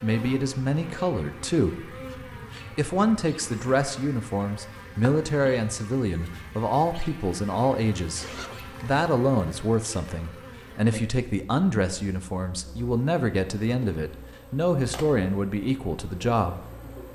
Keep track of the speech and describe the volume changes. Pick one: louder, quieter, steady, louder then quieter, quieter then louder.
steady.